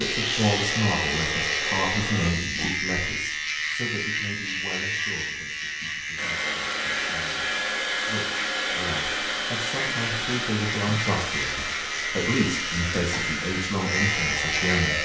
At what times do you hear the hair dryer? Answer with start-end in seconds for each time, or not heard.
0.0-2.3, 6.2-14.9.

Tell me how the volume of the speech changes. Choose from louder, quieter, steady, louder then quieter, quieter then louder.
quieter then louder.